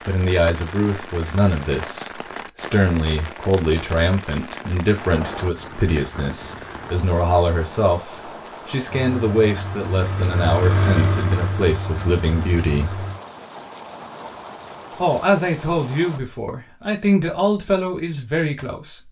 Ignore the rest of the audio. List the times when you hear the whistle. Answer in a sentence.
You can't hear the whistle here.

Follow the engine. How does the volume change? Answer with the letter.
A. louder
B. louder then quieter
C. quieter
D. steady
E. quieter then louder
B.